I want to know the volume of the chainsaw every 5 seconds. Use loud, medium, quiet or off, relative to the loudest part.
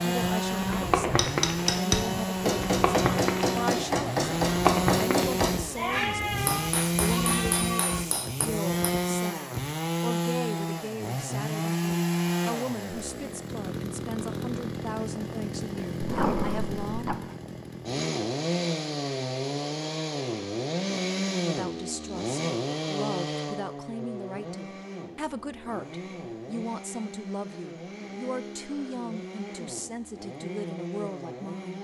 loud, loud, loud, loud, loud, medium, medium.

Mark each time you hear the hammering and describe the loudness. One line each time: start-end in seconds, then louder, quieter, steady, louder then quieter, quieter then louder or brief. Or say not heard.
1.1-8.9 quieter.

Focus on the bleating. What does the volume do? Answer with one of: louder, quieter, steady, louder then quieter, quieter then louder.
steady.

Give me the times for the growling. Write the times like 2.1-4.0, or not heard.
16.0-17.1.